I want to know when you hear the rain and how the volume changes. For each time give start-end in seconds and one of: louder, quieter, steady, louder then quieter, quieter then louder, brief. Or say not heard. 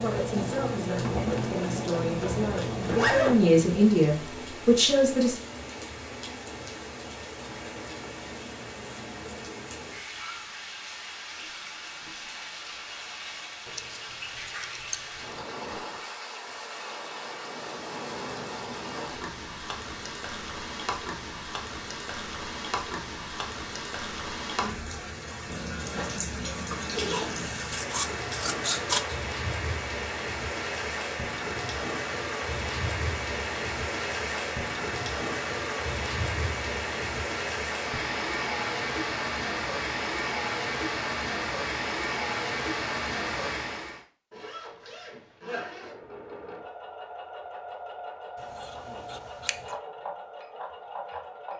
0.0-44.0 louder.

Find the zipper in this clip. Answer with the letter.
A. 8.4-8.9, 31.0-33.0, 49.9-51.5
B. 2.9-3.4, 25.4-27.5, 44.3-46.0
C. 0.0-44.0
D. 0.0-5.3
B.